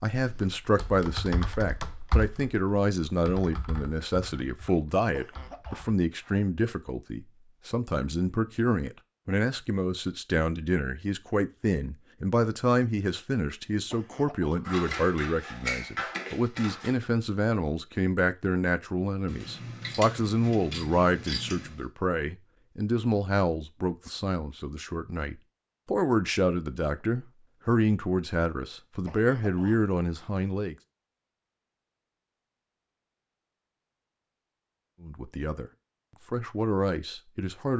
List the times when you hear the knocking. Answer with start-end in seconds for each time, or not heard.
not heard.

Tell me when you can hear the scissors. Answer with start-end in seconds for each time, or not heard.
14.6-16.9, 19.2-21.9.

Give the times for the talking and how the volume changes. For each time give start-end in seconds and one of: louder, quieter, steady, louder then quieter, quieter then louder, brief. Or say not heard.
0.0-30.8 steady
35.0-35.7 brief
36.3-37.7 brief.